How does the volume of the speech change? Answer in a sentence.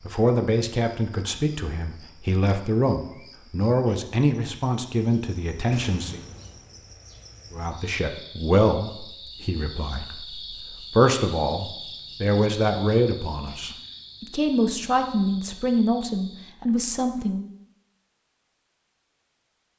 The loudness of the speech stays about the same.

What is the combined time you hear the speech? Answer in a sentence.
You can hear the speech for 16 seconds altogether.